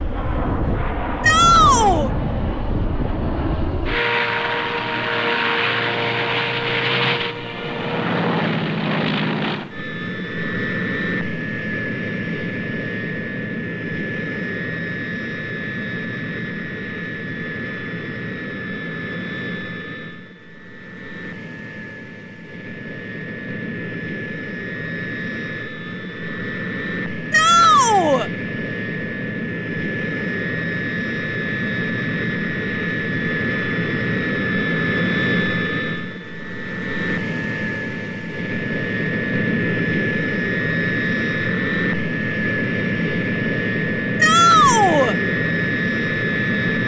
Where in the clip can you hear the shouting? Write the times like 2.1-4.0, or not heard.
1.2-2.1, 27.3-28.3, 44.2-45.1.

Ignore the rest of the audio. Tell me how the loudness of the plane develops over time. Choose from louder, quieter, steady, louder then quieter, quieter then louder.
quieter then louder.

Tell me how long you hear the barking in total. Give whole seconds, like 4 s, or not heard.
not heard.